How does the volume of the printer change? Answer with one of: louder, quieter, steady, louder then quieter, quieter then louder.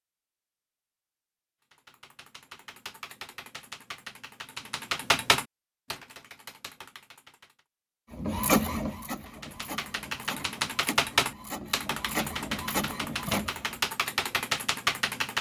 quieter then louder.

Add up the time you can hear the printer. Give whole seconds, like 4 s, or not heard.
6 s.